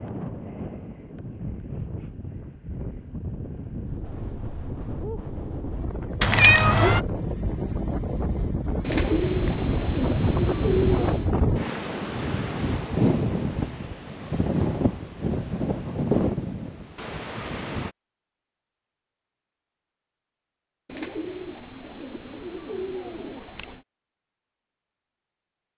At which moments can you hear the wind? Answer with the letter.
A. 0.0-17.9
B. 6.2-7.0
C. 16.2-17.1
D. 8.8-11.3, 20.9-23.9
A.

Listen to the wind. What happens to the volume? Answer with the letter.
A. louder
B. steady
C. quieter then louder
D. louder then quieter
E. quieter
A.